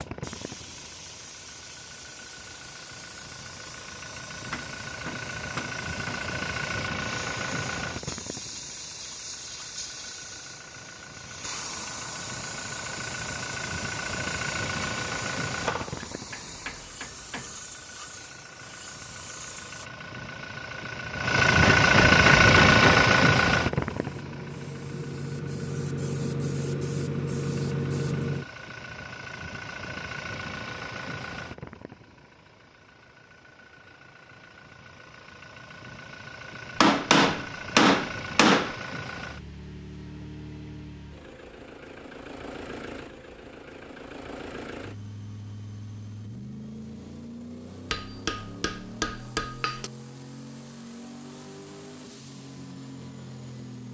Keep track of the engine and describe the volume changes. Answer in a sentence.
The loudness of the engine goes up, then down.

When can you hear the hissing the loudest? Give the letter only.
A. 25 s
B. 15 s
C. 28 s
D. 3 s
C.